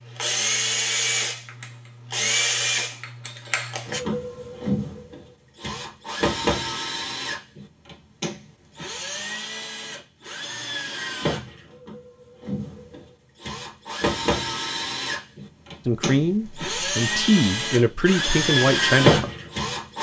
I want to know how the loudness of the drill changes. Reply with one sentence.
The loudness of the drill goes down, then up.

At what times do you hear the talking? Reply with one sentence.
You can hear the talking from 15.8 to 19.3 s.